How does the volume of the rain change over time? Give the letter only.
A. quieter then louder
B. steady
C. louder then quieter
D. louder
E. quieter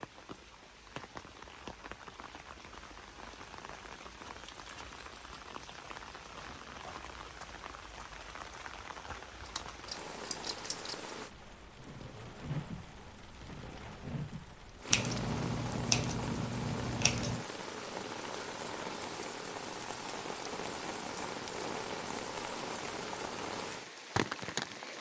D.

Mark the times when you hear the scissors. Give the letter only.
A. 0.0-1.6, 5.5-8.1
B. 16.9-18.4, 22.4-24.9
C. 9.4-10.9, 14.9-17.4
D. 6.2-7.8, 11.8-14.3
C.